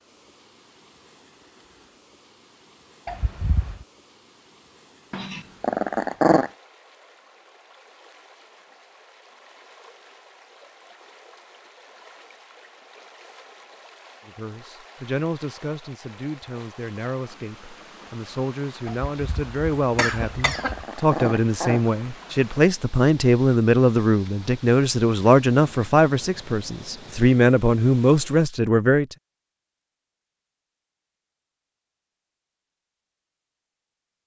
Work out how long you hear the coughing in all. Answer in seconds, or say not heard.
3 s.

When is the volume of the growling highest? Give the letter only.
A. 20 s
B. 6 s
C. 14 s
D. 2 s
B.